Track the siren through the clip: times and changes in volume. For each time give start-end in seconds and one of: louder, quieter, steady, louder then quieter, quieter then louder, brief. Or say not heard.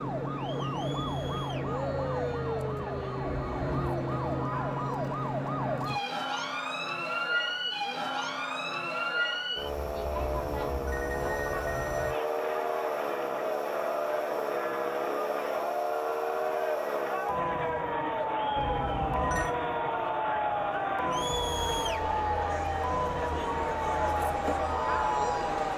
0.0-25.7 steady.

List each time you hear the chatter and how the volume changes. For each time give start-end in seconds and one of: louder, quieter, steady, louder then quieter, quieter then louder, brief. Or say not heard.
0.0-25.7 louder.